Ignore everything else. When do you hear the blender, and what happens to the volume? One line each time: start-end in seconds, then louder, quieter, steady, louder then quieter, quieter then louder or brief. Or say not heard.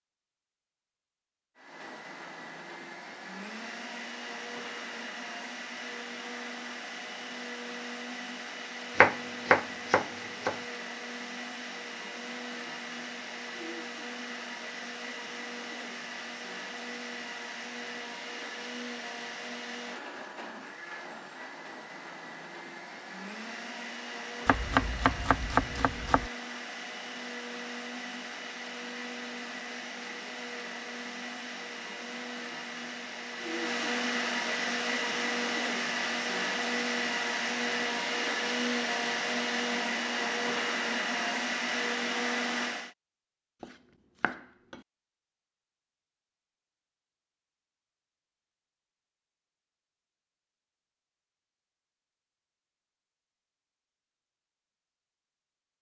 1.6-43.0 louder.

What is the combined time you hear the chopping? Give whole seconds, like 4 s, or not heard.
5 s.